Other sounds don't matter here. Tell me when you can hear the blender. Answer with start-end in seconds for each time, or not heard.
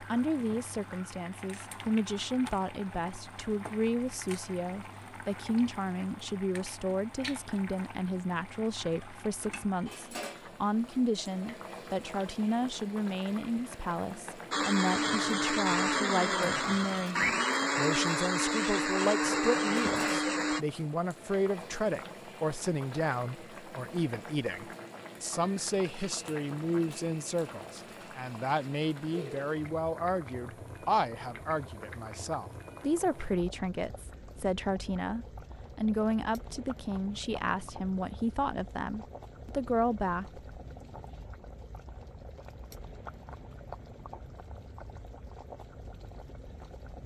14.5-20.6.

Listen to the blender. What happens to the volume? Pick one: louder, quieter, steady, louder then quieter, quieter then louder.
steady.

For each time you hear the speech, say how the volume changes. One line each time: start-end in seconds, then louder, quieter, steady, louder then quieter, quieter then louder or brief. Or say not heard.
0.0-40.4 steady.